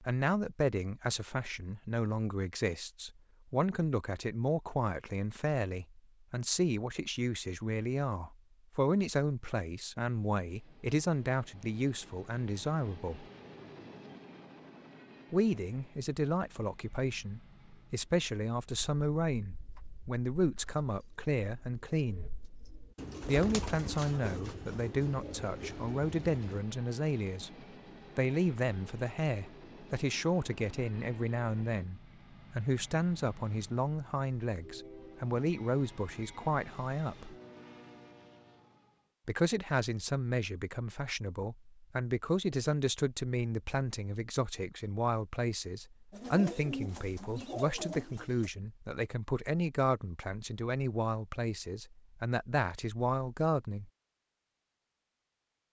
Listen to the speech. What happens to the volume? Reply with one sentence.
The volume of the speech stays about the same.